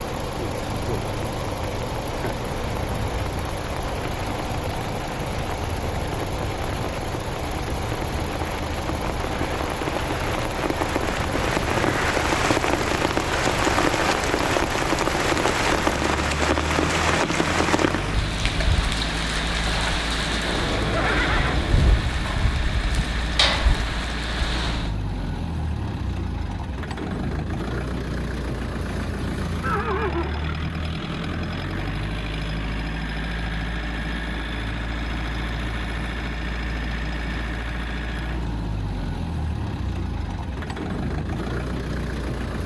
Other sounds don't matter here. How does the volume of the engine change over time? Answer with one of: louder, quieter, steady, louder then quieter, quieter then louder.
steady.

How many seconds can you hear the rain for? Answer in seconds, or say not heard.
25 s.